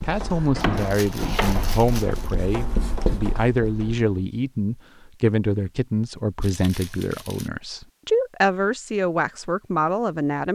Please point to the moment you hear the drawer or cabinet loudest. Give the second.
1 s.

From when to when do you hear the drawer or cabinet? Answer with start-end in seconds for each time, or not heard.
0.6-2.1.